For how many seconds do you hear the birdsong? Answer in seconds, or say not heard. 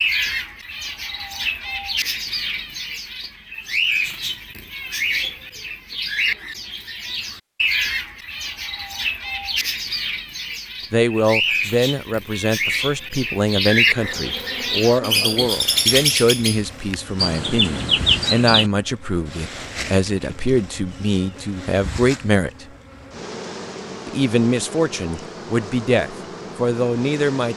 19 s.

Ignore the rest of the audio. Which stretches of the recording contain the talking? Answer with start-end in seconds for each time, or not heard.
10.9-22.6, 24.1-27.5.